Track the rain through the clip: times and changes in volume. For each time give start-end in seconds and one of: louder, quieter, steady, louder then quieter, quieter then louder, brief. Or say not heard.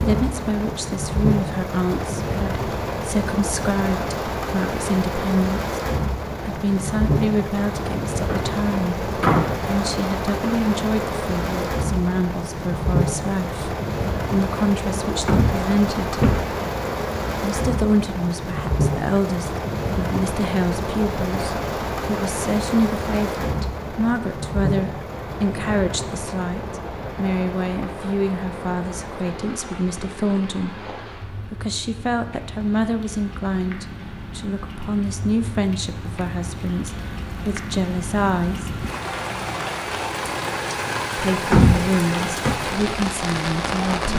0.0-44.1 quieter then louder.